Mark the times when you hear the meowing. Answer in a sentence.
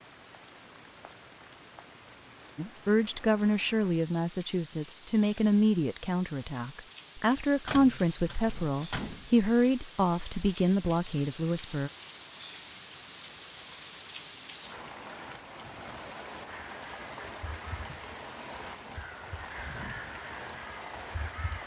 You can't hear the meowing here.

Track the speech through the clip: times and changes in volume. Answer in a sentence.
You can hear the speech from 2.5 to 11.9 s, at a steady volume.